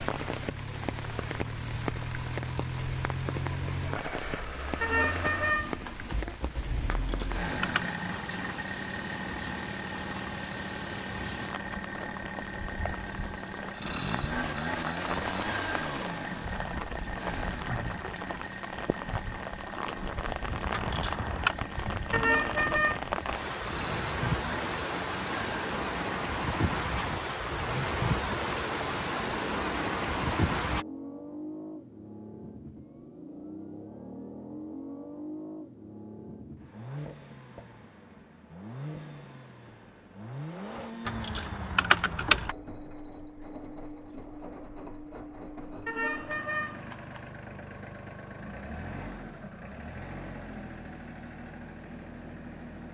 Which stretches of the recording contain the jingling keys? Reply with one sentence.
You can hear the jingling keys from 6.9 to 8.0 s, from 20.7 to 21.6 s and from 41.0 to 42.5 s.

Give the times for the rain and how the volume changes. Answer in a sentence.
You can hear the rain from 0.0 to 30.9 s, getting louder.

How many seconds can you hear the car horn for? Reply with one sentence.
The car horn can be heard for 4 seconds in total.